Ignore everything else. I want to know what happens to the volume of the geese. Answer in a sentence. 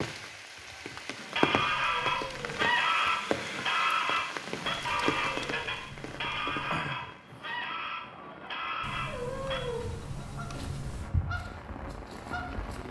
The volume of the geese goes down.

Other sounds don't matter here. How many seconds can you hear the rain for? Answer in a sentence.
You can hear the rain for 13 seconds altogether.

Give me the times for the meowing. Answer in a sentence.
The meowing can be heard from 1.6 to 2.6 s, from 4.8 to 6.8 s and from 8.8 to 11.1 s.